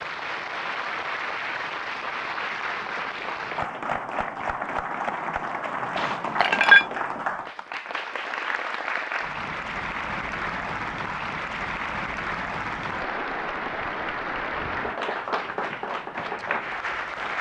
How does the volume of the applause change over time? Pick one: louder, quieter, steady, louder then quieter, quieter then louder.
steady.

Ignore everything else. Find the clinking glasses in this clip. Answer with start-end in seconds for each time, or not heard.
6.0-6.8.